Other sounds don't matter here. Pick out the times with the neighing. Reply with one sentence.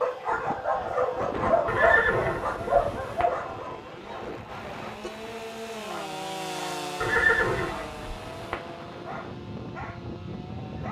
The neighing can be heard from 1.6 to 3.2 s and from 7.0 to 8.6 s.